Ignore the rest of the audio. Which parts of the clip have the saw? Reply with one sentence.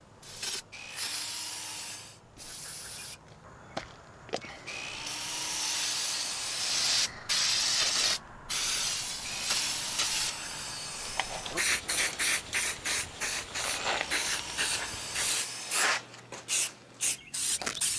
You can hear the saw from 0.7 to 2.2 s, from 4.7 to 7.0 s, from 9.2 to 11.7 s and from 13.8 to 15.9 s.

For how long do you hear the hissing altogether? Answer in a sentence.
You can hear the hissing for 18 seconds altogether.